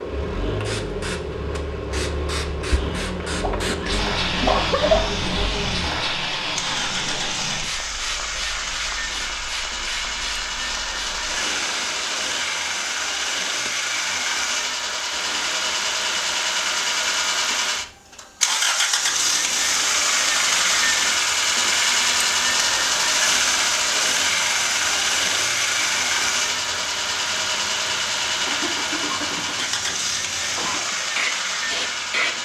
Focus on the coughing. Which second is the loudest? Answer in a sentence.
The loudest moment of the coughing is at 5 seconds.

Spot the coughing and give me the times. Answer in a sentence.
You can hear the coughing from 3.4 to 5.3 s and from 28.4 to 30.9 s.